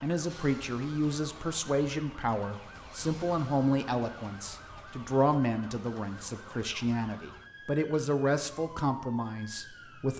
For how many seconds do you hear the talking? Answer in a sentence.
The talking can be heard for 10 seconds in total.